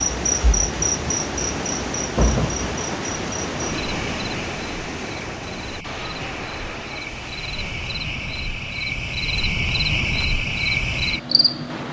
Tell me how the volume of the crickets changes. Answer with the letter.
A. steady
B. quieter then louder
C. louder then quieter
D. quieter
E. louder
B.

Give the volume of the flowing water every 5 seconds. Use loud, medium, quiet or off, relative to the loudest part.
loud, medium, medium.